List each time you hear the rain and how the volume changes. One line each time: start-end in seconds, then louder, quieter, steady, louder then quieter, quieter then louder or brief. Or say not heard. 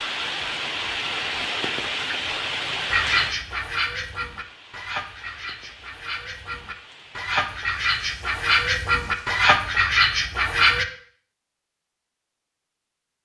0.0-9.4 quieter.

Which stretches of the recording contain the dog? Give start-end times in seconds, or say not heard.
not heard.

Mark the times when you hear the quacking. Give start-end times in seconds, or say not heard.
2.9-10.8.